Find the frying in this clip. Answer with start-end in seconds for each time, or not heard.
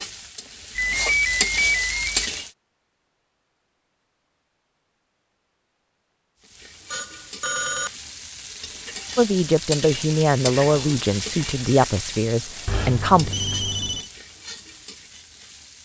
0.0-2.5, 6.4-15.8.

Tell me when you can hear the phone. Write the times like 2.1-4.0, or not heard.
0.8-2.3, 6.9-7.9, 12.7-14.1.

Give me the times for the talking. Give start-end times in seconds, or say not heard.
9.2-13.3.